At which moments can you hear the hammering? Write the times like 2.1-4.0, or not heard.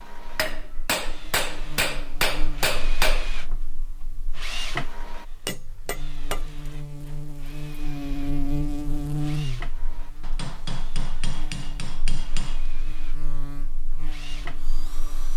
0.3-3.3, 5.5-6.5, 10.2-12.7.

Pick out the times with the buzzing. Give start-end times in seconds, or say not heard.
0.1-15.3.